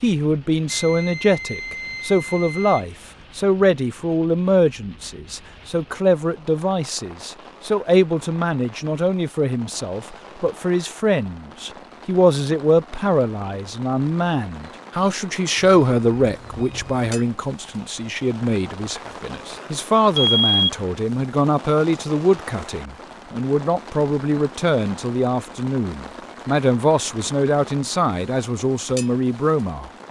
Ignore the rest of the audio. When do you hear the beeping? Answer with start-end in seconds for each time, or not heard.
0.7-3.2, 15.6-17.1, 20.1-20.7.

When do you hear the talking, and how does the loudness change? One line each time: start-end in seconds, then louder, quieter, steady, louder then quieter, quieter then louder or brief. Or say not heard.
0.0-29.9 steady.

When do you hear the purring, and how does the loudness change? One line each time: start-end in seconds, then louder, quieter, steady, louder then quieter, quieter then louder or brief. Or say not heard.
not heard.